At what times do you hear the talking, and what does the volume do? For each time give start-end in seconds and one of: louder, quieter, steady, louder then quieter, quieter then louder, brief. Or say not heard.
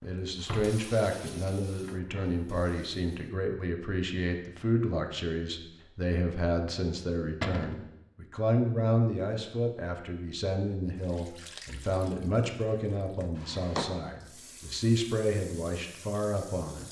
0.0-16.8 steady.